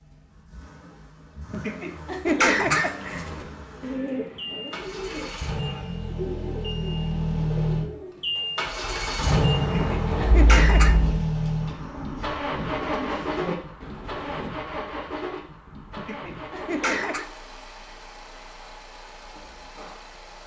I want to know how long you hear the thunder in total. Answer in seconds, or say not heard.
2 s.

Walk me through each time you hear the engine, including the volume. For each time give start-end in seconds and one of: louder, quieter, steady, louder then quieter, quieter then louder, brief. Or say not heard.
0.0-20.4 louder then quieter.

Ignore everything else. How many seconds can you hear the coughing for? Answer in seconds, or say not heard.
4 s.